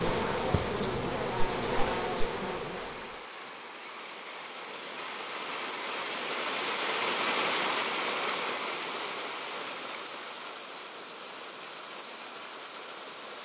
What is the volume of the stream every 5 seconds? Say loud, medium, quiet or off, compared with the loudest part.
medium, loud, medium.